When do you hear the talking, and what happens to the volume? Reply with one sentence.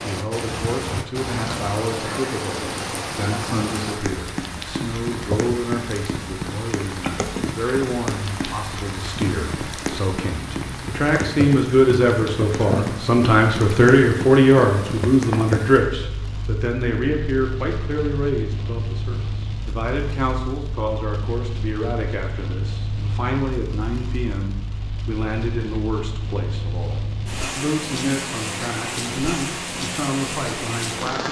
The talking can be heard from 0.0 to 31.2 s, getting louder then quieter.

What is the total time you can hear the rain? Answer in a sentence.
You can hear the rain for 31 seconds altogether.